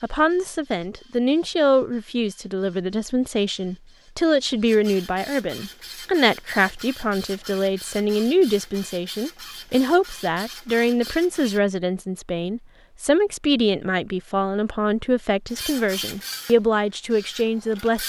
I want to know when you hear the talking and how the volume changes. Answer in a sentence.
The talking can be heard from 0.0 to 18.0 s, at a steady volume.